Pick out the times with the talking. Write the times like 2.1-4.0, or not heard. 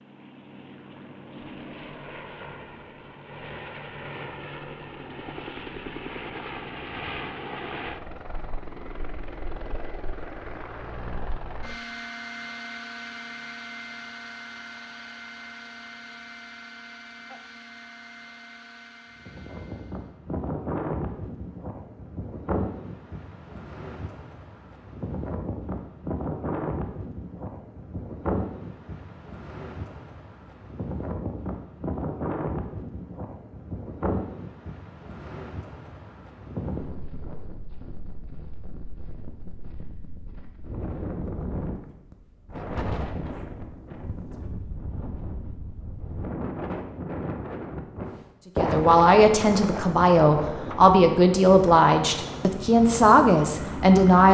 48.5-54.2.